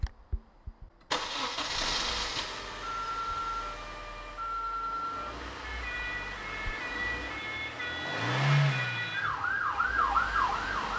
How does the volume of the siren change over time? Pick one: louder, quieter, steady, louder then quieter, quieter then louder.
louder.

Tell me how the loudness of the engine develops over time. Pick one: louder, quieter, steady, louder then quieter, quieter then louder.
quieter then louder.